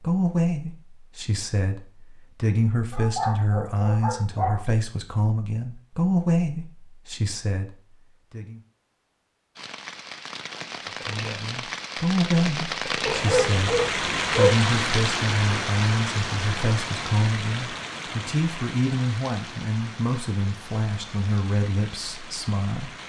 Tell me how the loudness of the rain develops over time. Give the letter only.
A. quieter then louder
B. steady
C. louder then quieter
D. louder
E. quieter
C.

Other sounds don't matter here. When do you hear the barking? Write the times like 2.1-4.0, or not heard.
2.9-4.6, 13.1-14.7.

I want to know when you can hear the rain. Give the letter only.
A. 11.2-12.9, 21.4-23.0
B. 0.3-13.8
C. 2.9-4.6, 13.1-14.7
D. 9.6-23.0
D.